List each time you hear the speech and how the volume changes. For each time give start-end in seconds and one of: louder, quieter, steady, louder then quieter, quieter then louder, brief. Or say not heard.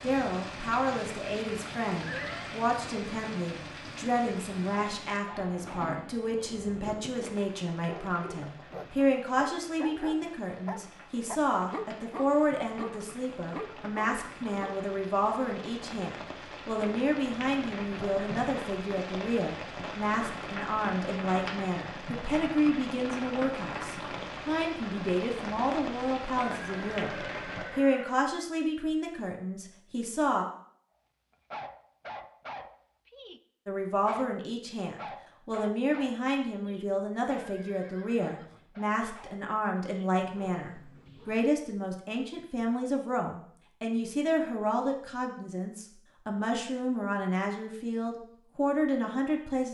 0.0-30.4 steady
33.6-49.6 steady.